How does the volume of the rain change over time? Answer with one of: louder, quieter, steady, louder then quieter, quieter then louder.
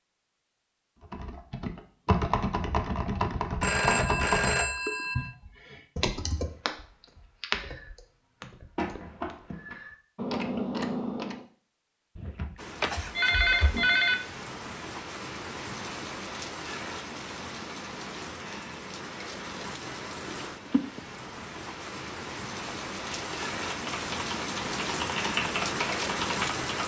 louder.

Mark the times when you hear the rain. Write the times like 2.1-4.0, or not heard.
12.6-26.8.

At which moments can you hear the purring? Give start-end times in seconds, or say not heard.
not heard.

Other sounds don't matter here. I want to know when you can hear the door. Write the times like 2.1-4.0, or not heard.
8.8-9.8.